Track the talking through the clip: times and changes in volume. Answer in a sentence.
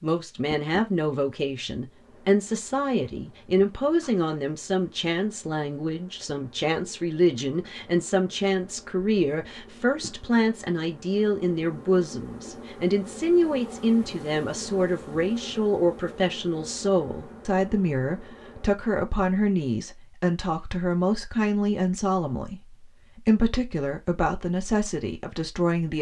You can hear the talking from 0.0 to 25.9 s, at a steady volume.